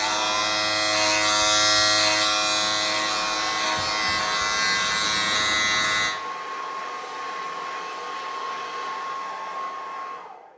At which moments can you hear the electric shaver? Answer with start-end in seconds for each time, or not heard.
0.0-6.2.